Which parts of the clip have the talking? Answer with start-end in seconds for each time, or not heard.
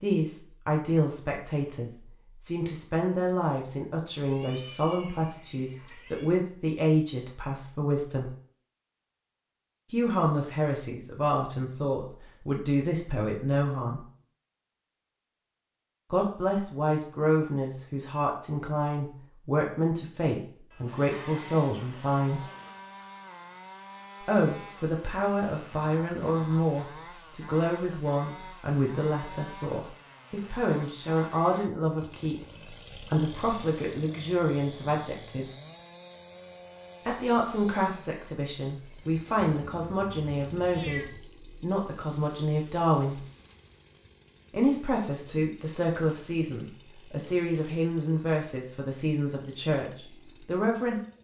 0.0-8.3, 9.9-14.1, 16.1-22.4, 24.2-35.5, 37.0-43.2, 44.5-51.0.